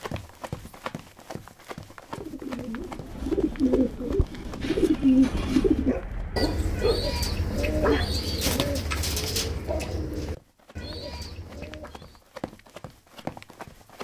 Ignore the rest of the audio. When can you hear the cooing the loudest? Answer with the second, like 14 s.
5 s.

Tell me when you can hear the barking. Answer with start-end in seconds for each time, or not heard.
5.5-8.2.